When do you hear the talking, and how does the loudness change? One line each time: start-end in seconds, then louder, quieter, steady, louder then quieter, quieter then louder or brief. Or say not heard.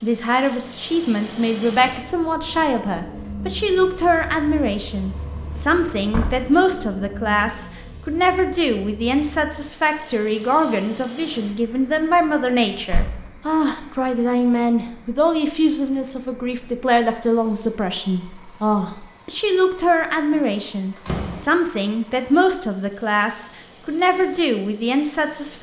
0.0-25.5 steady.